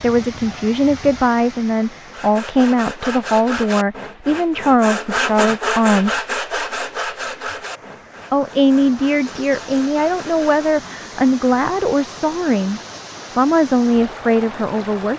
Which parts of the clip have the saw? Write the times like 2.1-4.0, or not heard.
2.0-10.5.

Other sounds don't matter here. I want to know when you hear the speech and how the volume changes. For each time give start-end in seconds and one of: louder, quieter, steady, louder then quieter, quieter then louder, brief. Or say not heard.
0.0-6.2 steady
8.3-15.1 steady.